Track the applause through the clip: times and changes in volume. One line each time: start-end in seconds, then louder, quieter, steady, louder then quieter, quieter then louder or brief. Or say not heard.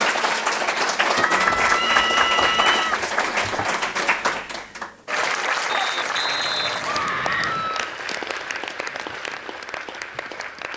0.0-10.7 quieter.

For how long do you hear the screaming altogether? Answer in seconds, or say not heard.
3 s.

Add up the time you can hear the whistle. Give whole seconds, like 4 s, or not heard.
3 s.